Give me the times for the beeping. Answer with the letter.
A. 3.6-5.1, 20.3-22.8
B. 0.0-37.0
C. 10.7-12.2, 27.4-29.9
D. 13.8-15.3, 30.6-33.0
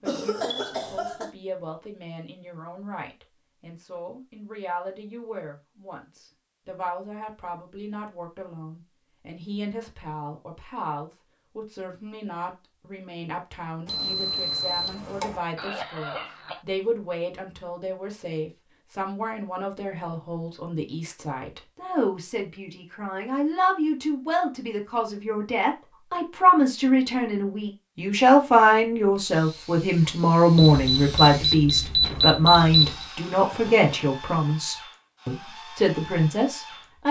D.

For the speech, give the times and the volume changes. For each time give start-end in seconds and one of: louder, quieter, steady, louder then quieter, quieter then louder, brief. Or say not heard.
0.0-37.0 louder.